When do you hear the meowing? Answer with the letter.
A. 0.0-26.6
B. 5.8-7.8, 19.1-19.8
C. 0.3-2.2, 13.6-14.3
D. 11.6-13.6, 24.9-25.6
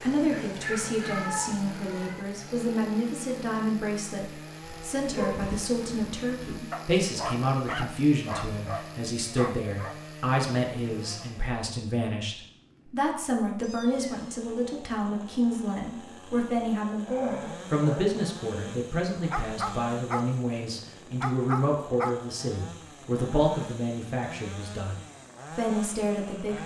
C.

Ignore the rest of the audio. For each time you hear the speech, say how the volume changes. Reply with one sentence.
You can hear the speech from 0.0 to 26.6 s, at a steady volume.